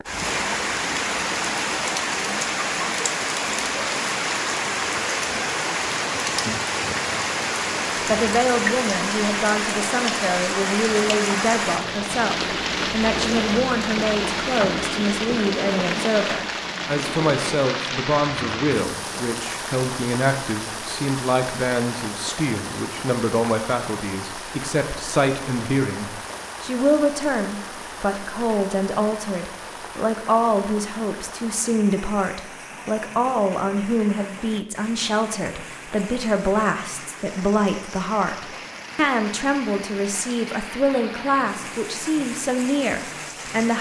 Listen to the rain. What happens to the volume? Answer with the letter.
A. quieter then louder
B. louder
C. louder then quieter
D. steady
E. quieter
E.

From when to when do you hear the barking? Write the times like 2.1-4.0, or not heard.
not heard.